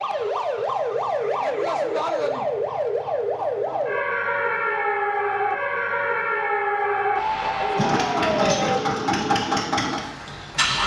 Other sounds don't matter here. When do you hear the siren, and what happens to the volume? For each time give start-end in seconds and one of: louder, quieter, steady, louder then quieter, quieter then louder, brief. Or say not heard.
0.0-8.8 steady.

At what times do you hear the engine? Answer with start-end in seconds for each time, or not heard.
7.8-10.8.